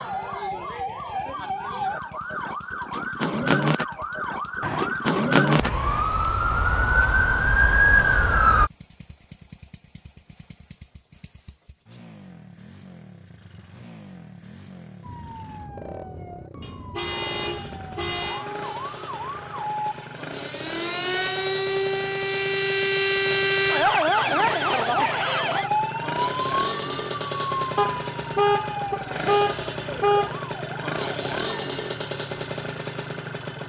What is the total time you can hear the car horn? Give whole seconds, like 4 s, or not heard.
6 s.